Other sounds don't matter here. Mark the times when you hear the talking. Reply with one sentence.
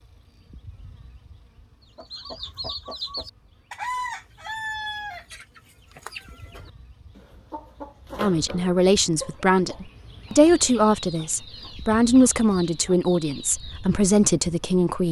The talking can be heard from 8.2 to 15.0 s.